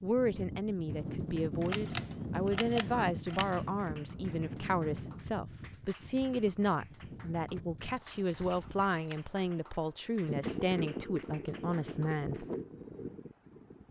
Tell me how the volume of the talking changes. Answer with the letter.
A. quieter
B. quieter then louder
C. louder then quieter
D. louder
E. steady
E.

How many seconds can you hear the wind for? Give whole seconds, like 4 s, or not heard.
14 s.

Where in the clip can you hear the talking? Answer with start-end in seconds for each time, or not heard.
0.0-12.4.